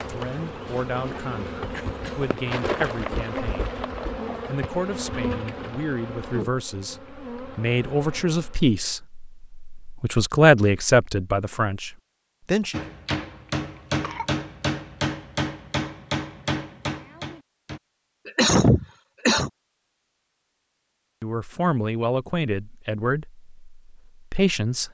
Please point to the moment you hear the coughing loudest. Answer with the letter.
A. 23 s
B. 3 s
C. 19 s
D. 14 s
C.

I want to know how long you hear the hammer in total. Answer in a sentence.
You can hear the hammer for 5 seconds altogether.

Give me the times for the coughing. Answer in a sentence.
You can hear the coughing from 1.7 to 2.2 s, from 13.4 to 14.3 s and from 18.2 to 19.5 s.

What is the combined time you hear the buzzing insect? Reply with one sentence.
The buzzing insect can be heard for 9 seconds in total.